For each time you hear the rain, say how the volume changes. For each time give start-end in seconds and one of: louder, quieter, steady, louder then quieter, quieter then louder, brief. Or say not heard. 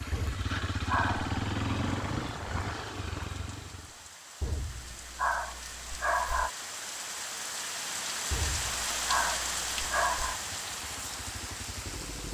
0.0-12.2 louder.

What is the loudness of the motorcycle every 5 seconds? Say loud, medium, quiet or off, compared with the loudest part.
loud, off, quiet.